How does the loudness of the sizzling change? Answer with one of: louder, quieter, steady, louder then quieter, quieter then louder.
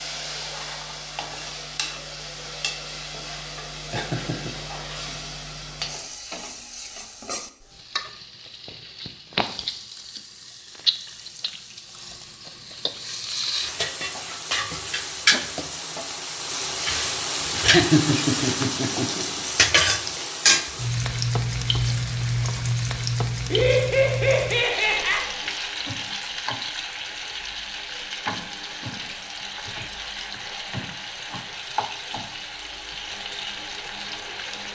louder then quieter.